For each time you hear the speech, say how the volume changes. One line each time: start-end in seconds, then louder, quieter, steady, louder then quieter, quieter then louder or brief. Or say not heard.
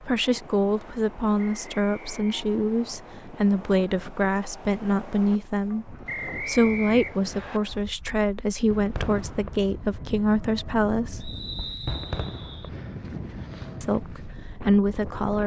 0.0-11.3 steady
13.8-15.4 brief.